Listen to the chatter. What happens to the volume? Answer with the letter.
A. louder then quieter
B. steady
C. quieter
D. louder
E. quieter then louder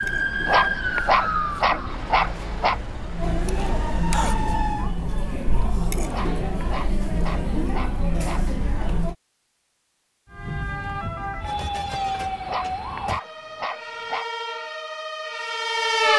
D.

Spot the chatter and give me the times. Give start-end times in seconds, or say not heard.
0.0-9.2.